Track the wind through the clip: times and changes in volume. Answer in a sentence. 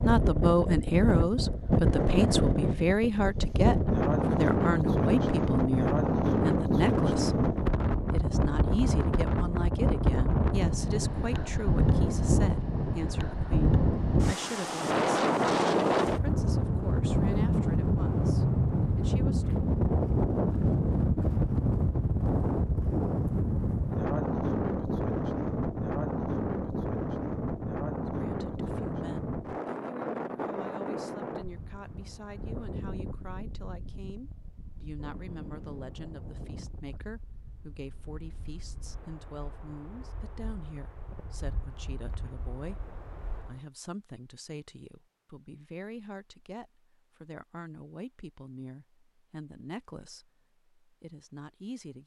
The wind can be heard from 0.0 to 43.6 s, getting quieter.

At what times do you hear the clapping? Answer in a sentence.
You can't hear the clapping here.